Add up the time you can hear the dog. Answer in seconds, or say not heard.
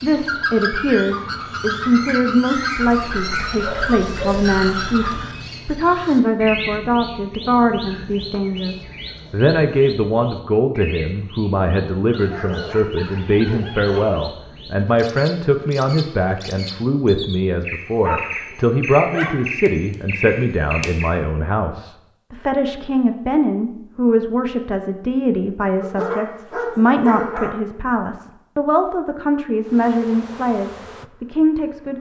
8 s.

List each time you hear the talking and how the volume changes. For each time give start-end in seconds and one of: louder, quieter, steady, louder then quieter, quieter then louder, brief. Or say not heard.
0.0-31.9 steady.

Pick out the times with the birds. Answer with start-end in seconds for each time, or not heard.
0.0-21.1.